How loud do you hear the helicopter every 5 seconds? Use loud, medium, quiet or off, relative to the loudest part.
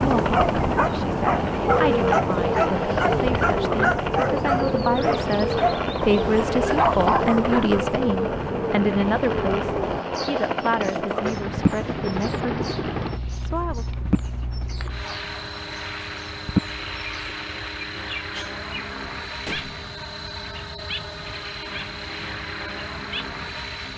loud, loud, loud, medium, medium.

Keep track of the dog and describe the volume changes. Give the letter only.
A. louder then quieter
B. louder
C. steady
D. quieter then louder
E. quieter
C.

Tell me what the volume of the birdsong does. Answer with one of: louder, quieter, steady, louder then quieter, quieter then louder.
quieter.